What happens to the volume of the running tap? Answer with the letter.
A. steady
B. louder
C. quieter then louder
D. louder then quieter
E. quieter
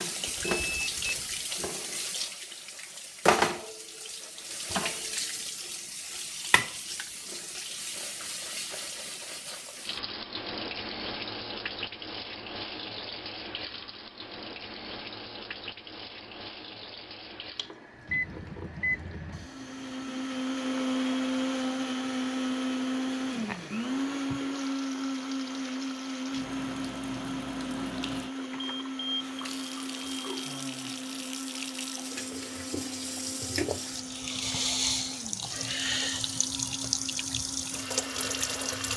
C.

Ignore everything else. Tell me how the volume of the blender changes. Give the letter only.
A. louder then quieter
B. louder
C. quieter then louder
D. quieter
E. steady
D.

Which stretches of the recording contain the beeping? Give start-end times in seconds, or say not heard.
0.2-1.2, 18.1-19.4, 28.4-30.6.